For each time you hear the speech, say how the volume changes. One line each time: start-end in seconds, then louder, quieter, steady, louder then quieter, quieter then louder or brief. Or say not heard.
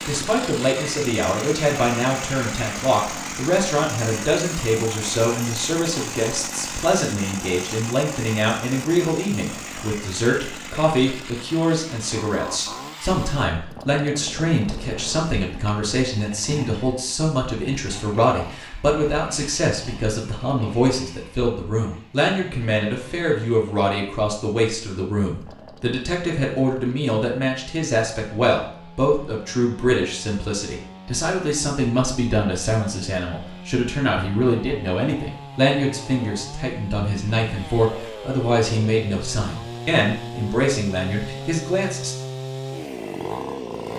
0.1-42.1 steady.